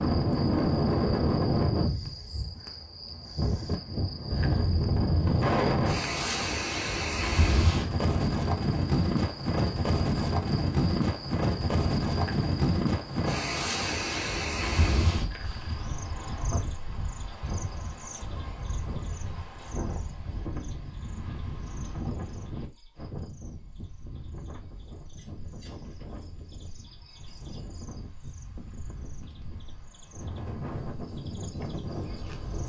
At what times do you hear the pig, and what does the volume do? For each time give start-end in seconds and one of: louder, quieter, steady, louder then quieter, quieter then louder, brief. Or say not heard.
not heard.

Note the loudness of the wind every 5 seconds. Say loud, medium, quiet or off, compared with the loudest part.
loud, loud, loud, medium, quiet, quiet, medium.